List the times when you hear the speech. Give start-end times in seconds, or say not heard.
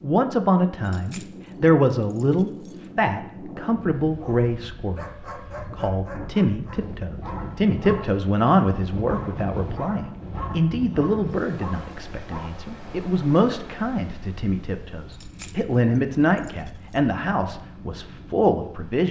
0.0-5.0, 5.7-19.0.